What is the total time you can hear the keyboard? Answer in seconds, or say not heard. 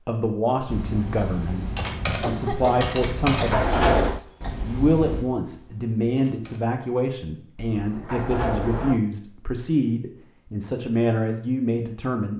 6 s.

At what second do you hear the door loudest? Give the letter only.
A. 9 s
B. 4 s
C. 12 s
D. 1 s
B.